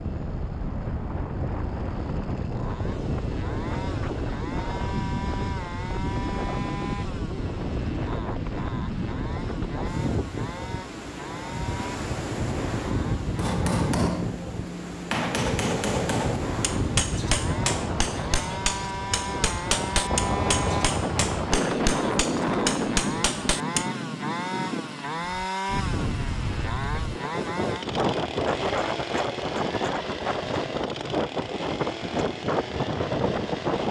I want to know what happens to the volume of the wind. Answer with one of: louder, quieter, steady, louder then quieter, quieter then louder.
steady.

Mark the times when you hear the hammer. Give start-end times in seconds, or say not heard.
13.3-23.9.